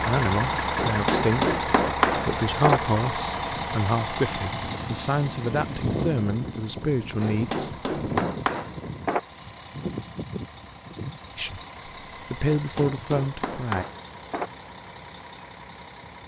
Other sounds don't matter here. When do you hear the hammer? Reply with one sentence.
The hammer can be heard from 0.8 to 2.8 s, from 7.2 to 9.2 s and from 12.4 to 14.5 s.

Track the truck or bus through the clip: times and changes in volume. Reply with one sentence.
The truck or bus can be heard from 0.0 to 16.2 s, getting quieter.